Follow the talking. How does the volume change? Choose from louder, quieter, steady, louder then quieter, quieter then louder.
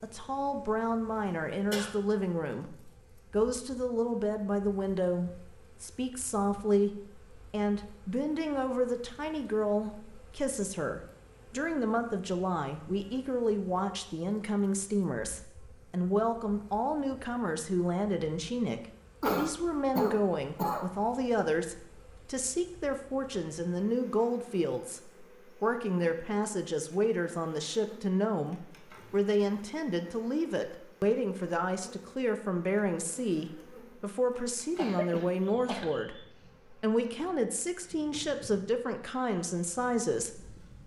steady.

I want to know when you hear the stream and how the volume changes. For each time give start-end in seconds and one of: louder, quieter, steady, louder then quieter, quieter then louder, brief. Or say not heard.
not heard.